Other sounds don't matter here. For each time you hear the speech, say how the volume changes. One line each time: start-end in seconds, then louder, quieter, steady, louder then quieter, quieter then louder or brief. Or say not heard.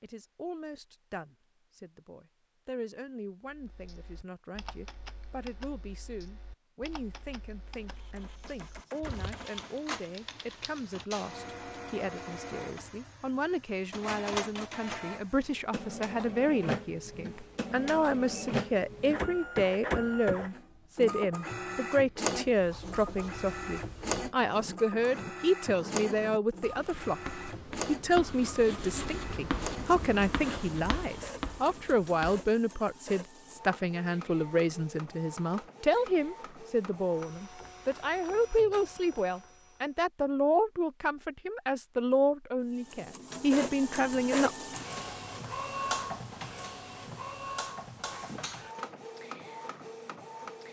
0.0-44.5 louder.